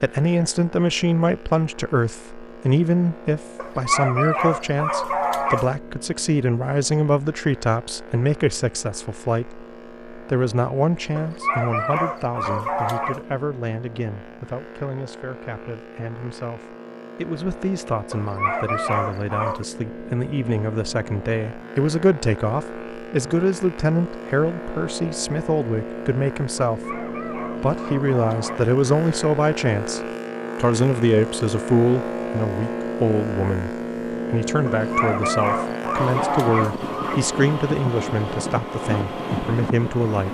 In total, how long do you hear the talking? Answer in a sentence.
You can hear the talking for 40 seconds altogether.